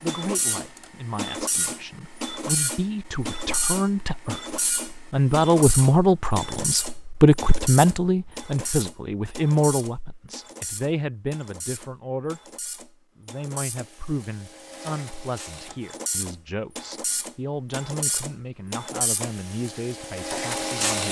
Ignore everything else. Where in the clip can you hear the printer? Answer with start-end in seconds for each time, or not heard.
0.0-21.0.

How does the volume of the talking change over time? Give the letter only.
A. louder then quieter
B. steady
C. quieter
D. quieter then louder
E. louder
A.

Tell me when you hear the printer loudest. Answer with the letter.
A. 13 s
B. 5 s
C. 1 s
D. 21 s
D.